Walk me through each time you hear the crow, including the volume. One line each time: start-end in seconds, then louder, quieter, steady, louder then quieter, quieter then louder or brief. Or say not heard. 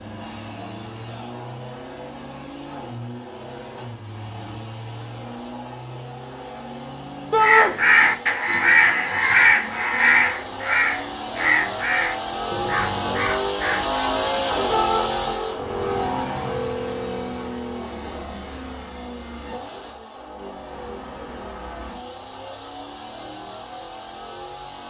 7.4-14.0 quieter.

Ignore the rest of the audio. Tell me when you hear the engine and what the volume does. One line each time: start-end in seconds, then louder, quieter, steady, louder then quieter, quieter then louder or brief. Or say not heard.
0.0-24.8 louder then quieter.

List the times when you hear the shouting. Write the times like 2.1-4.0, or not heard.
7.3-7.8, 14.7-15.1.